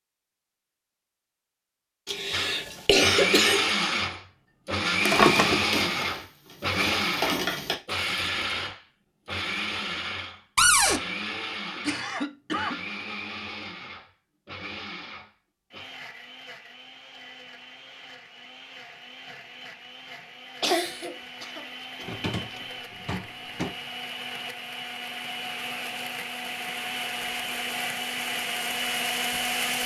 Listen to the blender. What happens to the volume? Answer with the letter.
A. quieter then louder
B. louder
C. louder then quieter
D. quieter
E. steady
A.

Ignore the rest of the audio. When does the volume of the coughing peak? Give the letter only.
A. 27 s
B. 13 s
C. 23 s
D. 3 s
D.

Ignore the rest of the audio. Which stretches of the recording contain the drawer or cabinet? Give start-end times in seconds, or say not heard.
5.0-5.6, 10.6-11.0, 22.0-23.8.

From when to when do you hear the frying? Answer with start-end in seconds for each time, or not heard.
5.2-7.8.